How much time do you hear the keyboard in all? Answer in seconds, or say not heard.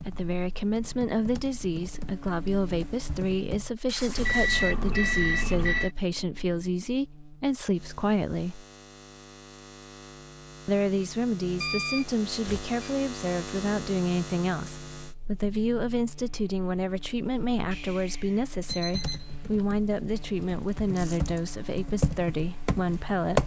8 s.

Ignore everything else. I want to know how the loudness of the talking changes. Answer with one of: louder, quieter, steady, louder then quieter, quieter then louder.
steady.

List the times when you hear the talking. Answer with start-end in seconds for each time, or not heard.
0.0-8.7, 10.7-23.4.